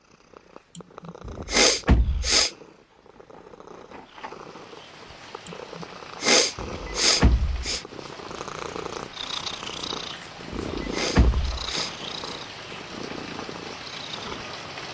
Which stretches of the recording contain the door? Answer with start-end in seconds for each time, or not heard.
1.2-2.5, 6.5-7.8, 10.5-11.7.